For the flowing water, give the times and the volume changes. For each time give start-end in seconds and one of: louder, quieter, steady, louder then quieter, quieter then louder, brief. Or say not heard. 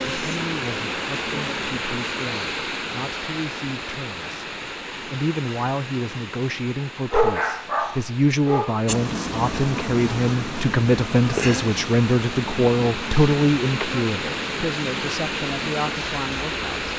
0.0-16.9 quieter then louder.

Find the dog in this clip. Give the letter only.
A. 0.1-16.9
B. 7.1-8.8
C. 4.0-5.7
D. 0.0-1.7
B.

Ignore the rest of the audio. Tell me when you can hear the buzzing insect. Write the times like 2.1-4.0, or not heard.
0.0-1.9, 8.8-16.9.